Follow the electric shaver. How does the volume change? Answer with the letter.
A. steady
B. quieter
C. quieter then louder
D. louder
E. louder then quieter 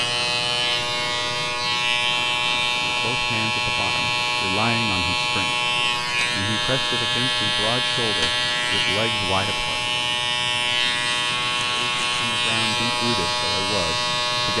A.